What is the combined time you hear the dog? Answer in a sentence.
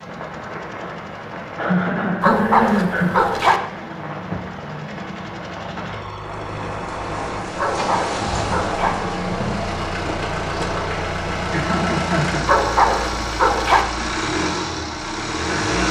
You can hear the dog for 4 seconds altogether.